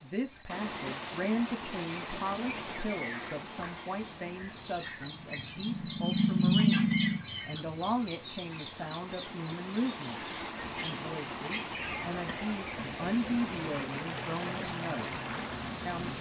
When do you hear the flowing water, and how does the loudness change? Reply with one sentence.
You can hear the flowing water from 0.0 to 16.1 s, getting quieter then louder.